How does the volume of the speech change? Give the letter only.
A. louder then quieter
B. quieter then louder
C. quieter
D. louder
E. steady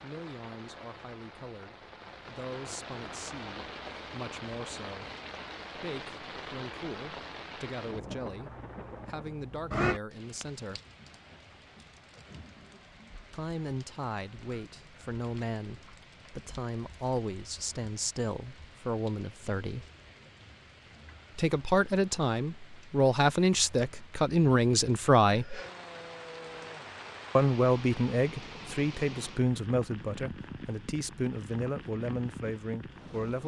A.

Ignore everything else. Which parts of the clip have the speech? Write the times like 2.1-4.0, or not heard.
0.0-5.0, 5.8-10.8, 13.3-19.9, 21.4-25.6, 27.4-33.4.